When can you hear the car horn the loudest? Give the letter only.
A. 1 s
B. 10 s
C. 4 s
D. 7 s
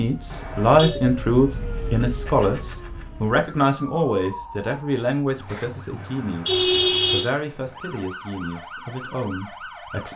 D.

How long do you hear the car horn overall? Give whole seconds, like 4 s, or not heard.
2 s.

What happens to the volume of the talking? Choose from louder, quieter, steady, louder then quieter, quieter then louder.
quieter.